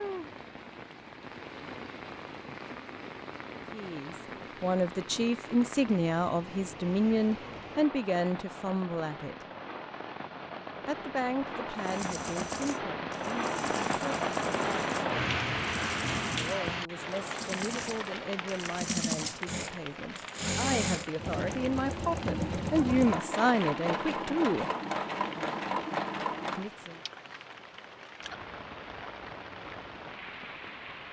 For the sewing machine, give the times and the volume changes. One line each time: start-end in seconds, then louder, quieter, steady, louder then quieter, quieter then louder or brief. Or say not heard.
11.8-26.7 louder.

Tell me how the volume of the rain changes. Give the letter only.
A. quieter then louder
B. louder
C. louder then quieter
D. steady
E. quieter
C.